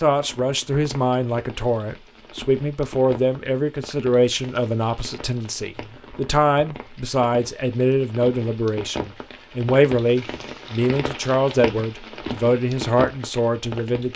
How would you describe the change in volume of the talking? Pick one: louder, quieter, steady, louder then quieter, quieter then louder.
steady.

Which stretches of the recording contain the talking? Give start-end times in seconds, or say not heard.
0.0-14.1.